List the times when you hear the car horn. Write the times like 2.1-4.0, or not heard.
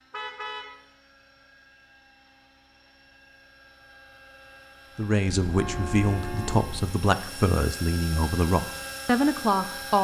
0.1-0.8, 5.5-7.0.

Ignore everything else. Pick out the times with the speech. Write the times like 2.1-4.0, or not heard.
5.0-9.9.